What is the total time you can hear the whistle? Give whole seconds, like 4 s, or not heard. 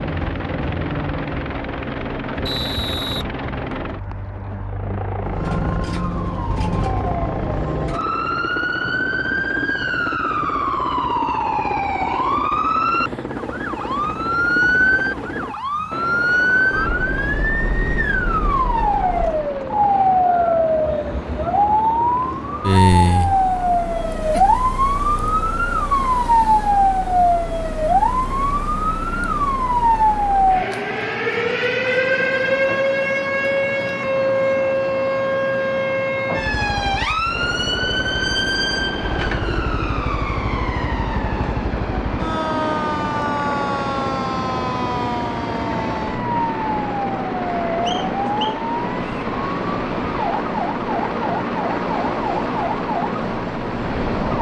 3 s.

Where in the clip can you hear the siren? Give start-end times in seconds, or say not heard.
5.2-54.3.